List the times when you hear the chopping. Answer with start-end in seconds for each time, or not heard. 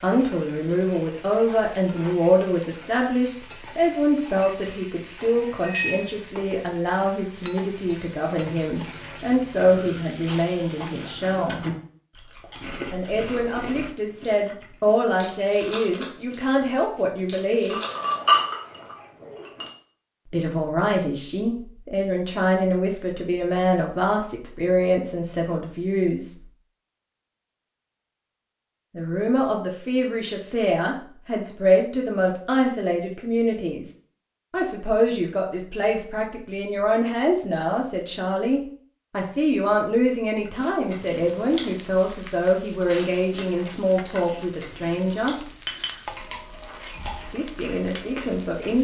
not heard.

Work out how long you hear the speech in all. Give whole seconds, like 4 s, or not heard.
40 s.